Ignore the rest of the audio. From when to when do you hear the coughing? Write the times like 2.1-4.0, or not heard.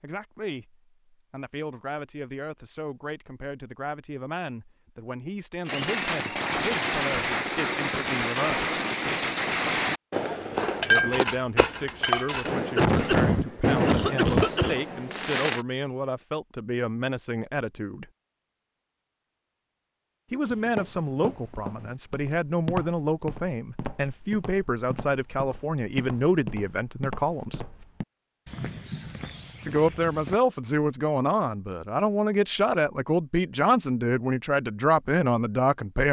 12.8-14.8.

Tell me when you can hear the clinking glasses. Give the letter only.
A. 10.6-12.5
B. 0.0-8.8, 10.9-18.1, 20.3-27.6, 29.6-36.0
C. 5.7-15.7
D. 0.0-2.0
A.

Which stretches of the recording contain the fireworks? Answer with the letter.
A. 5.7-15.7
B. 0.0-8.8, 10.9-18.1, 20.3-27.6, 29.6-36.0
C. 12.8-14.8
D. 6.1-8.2
A.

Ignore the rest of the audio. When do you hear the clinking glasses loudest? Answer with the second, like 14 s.
11 s.